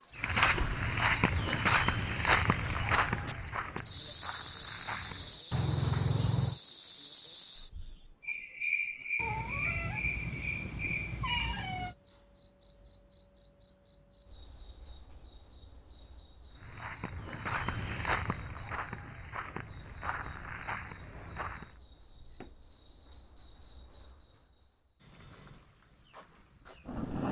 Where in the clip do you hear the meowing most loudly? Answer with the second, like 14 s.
6 s.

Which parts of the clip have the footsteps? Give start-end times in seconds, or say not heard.
0.1-5.4, 16.5-21.8.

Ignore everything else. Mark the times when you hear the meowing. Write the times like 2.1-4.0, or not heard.
5.5-6.6, 9.2-11.9, 22.1-22.7.